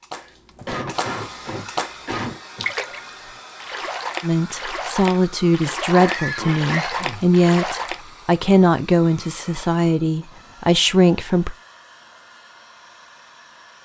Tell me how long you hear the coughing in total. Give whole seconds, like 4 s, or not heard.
4 s.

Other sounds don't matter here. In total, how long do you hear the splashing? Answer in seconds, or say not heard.
8 s.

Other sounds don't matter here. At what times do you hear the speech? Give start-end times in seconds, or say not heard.
4.2-11.6.